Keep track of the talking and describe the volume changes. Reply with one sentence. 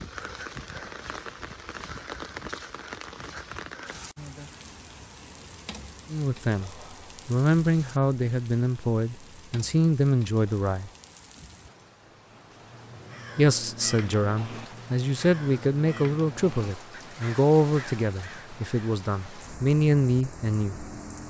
The loudness of the talking stays about the same.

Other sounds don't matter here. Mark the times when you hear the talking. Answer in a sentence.
The talking can be heard from 6.1 to 10.9 s and from 13.3 to 20.9 s.